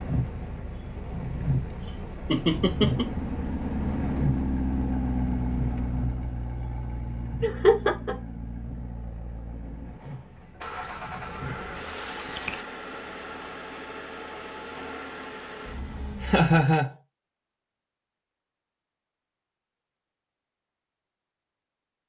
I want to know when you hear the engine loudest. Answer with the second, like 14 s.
5 s.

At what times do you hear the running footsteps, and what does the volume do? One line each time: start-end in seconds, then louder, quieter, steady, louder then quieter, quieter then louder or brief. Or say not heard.
not heard.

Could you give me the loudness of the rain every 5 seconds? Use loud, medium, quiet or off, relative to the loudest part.
loud, medium, medium, off, off.